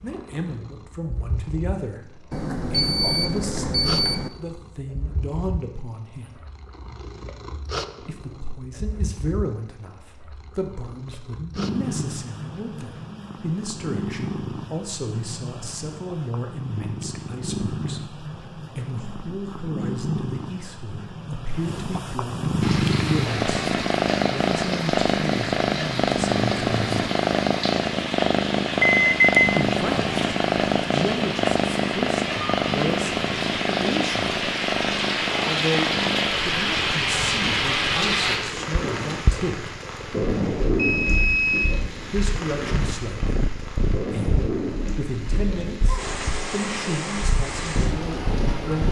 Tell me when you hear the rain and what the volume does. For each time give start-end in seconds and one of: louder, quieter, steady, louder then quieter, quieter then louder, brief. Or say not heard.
22.6-48.8 louder then quieter.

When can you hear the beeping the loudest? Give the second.
29 s.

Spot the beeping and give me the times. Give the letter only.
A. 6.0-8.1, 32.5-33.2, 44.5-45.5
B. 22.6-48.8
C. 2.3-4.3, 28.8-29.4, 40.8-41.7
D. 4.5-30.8
C.